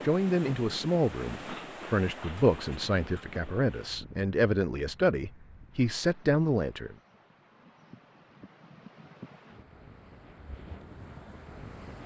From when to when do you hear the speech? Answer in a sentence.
The speech can be heard from 0.0 to 7.0 s.